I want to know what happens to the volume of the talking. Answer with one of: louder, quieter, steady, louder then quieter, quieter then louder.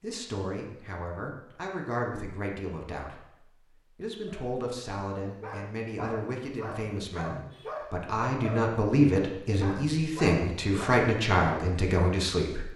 louder.